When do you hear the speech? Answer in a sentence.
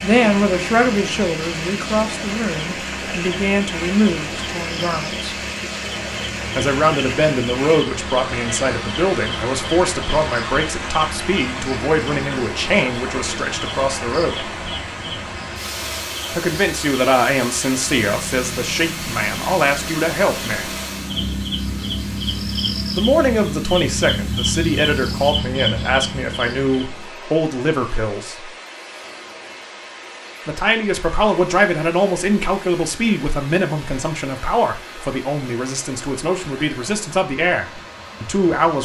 The speech can be heard from 0.0 to 5.2 s, from 6.5 to 14.5 s, from 16.3 to 20.7 s, from 22.9 to 28.5 s and from 30.4 to 38.8 s.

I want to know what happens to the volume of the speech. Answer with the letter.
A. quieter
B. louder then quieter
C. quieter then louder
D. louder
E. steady
E.